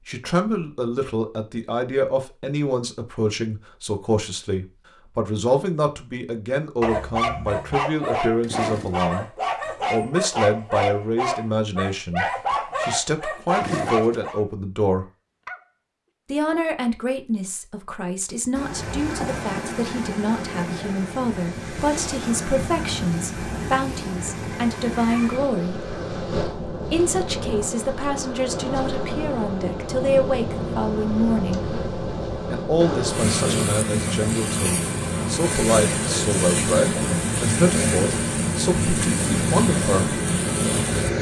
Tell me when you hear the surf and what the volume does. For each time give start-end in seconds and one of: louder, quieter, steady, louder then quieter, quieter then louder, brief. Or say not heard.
18.6-41.1 louder.